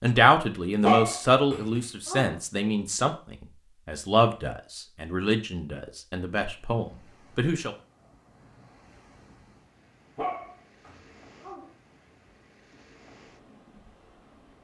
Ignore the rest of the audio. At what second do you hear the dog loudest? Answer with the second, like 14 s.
1 s.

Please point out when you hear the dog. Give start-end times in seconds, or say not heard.
0.8-2.4, 10.2-11.7.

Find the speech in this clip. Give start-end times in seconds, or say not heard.
0.0-7.8.